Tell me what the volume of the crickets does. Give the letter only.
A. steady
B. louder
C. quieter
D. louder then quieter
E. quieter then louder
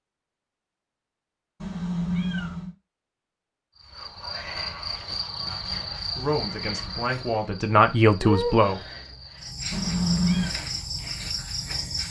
A.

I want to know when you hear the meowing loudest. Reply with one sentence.
The loudest moment of the meowing is at 10 seconds.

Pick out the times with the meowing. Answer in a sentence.
You can hear the meowing from 1.6 to 2.7 s and from 9.7 to 10.5 s.